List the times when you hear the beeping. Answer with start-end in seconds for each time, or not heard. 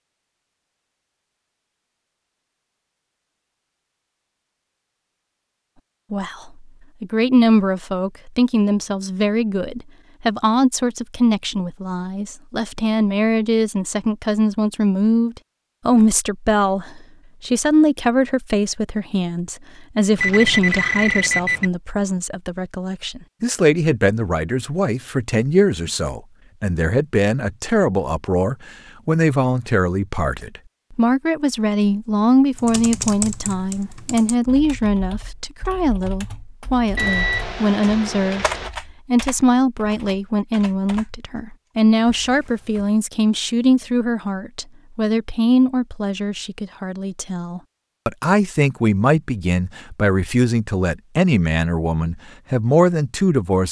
20.1-21.7, 37.0-38.7.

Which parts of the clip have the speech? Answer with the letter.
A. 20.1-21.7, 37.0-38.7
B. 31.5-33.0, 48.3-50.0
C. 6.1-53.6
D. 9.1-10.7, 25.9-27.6
C.